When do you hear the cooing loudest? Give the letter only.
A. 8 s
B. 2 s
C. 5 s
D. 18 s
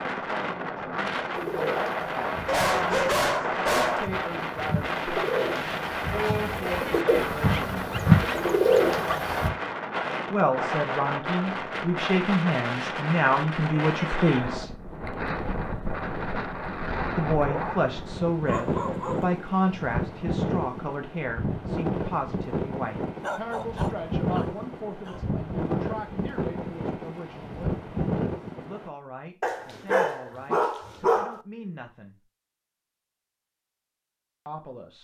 A.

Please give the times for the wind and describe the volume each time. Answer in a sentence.
You can hear the wind from 0.0 to 28.9 s, at a steady volume.